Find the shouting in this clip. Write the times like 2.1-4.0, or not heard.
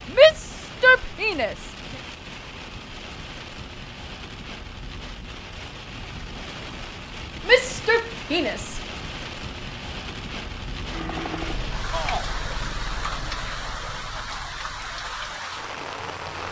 0.1-1.6, 7.5-8.8, 11.9-12.3.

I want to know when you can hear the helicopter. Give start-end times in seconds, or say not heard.
10.9-16.4.